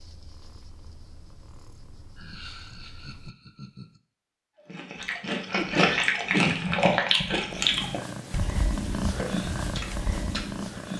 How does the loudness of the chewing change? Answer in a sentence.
The loudness of the chewing goes down.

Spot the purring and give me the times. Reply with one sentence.
You can hear the purring from 0.0 to 3.3 s and from 7.5 to 10.9 s.